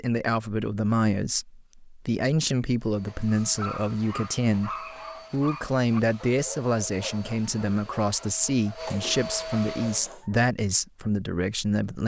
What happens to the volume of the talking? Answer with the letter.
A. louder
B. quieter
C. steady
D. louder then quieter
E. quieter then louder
C.